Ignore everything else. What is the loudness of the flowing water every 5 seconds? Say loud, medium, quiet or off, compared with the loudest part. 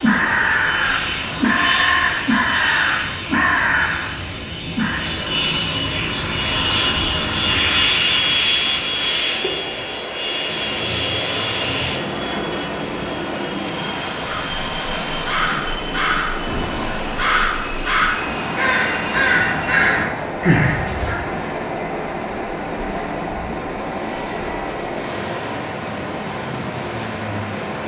medium, medium, loud, loud, loud, loud.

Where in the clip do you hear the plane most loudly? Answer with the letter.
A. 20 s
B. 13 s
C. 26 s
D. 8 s
D.